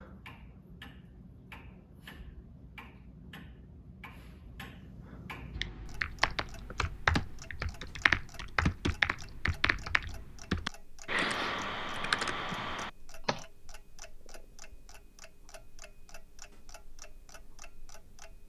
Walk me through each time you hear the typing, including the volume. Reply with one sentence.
The typing can be heard from 5.5 to 13.4 s, at a steady volume.